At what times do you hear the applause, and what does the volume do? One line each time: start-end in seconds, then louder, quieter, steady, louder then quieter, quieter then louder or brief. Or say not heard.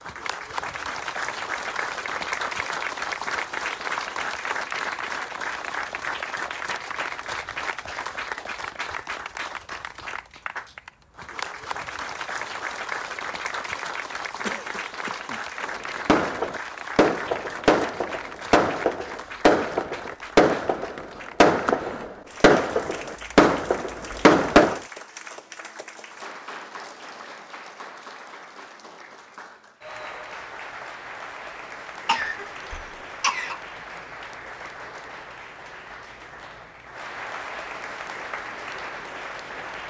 0.0-39.8 quieter.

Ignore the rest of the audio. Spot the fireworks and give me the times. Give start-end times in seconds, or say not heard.
15.7-24.8.